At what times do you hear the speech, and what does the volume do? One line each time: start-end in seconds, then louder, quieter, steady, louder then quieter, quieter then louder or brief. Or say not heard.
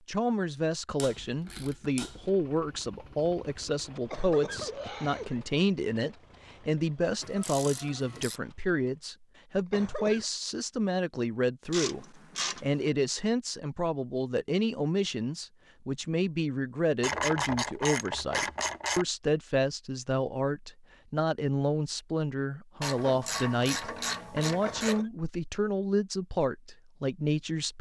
0.1-27.7 steady.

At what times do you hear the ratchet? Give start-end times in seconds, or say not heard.
0.9-2.3, 7.2-8.4, 11.7-12.9, 17.0-19.1, 22.8-25.1.